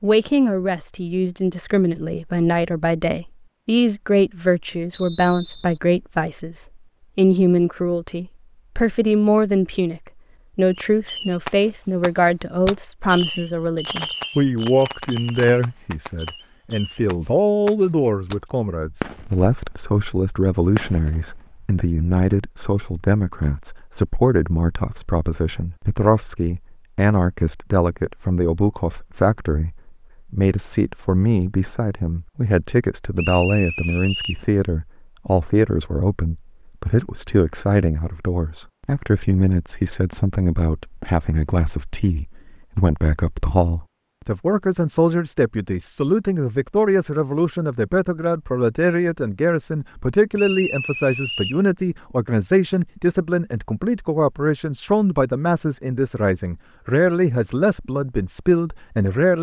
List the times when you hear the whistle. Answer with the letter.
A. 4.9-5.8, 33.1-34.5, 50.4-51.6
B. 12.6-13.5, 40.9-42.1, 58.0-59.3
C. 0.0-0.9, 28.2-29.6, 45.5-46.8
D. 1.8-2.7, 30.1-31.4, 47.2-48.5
A.